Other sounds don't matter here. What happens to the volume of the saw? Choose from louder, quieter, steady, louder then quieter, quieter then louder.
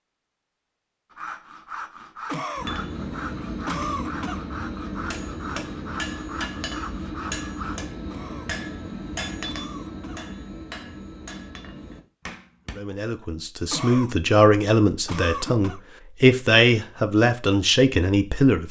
steady.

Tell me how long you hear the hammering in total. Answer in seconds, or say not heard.
10 s.